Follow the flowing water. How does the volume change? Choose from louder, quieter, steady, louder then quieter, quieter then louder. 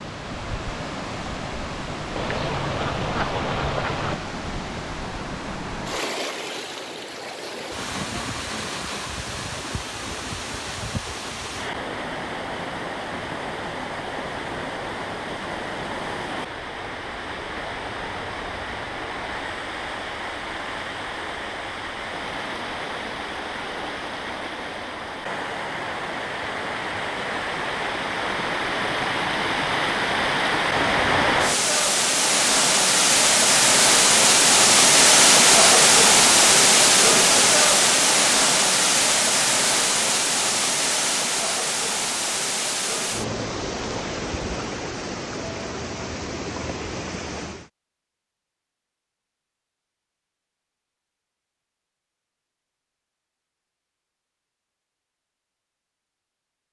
louder then quieter.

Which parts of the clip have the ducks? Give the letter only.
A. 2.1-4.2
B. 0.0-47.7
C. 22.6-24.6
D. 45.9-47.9
A.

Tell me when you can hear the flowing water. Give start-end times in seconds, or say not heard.
0.0-47.7.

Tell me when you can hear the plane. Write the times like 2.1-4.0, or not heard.
not heard.